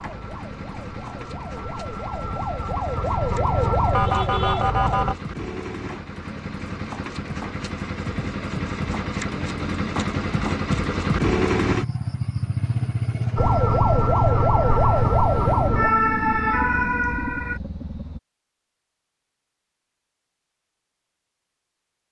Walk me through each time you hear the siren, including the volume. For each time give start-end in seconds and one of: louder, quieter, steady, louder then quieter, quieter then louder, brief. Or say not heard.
0.0-5.2 louder
13.3-17.6 steady.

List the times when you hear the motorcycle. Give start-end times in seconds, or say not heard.
0.0-18.2.